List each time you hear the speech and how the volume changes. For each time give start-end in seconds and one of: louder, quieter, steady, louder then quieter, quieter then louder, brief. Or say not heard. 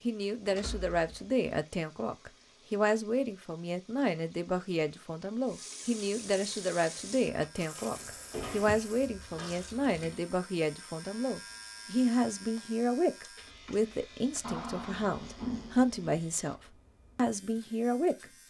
0.0-18.2 steady.